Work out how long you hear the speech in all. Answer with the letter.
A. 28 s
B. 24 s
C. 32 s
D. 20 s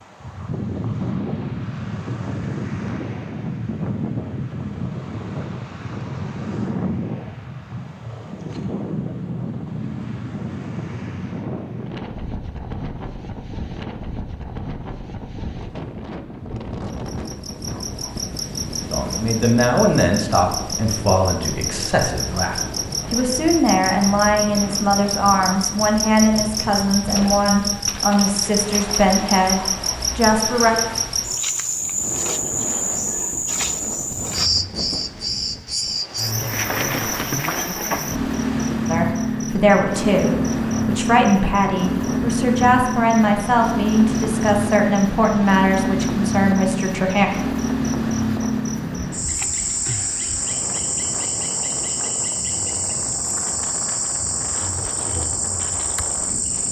D.